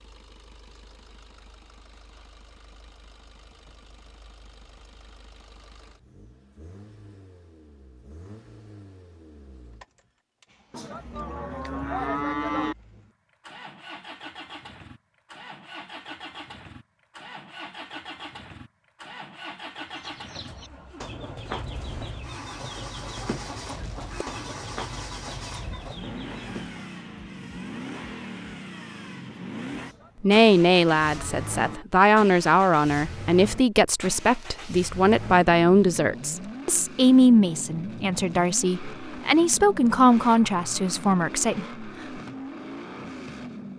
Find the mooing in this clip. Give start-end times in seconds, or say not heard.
10.7-12.8, 29.8-31.9.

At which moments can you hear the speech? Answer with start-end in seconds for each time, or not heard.
30.2-41.6.